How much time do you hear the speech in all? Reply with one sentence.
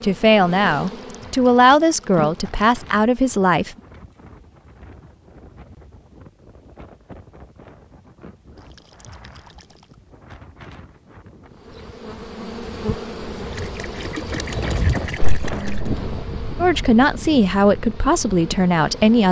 The speech can be heard for 6 seconds in total.